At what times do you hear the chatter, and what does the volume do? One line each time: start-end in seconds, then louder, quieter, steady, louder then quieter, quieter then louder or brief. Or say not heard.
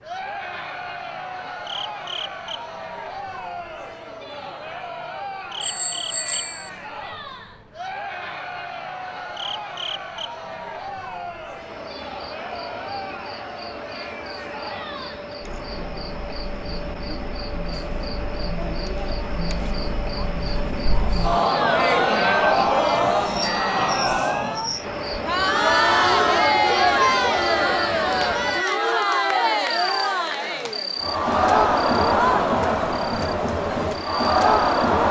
0.0-35.0 louder.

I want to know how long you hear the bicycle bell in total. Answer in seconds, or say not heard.
2 s.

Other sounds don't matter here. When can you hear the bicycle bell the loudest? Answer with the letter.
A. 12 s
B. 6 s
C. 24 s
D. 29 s
B.